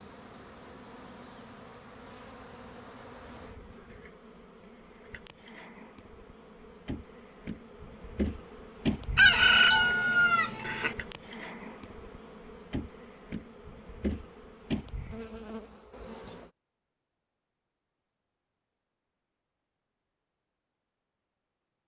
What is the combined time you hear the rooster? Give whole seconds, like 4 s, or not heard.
2 s.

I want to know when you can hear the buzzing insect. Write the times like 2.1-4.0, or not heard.
0.0-16.5.